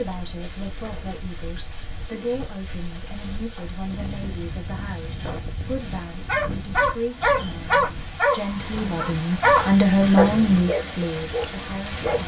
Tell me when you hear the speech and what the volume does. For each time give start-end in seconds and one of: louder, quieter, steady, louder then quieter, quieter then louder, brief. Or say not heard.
0.0-12.1 louder.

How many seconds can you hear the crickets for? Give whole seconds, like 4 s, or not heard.
12 s.